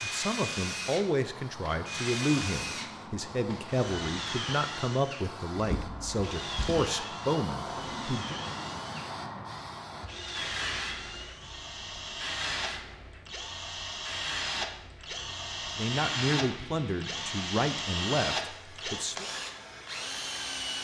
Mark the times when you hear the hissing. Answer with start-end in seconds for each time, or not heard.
0.0-20.7.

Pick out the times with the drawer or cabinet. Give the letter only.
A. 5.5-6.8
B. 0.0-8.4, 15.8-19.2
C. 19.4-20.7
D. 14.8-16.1
A.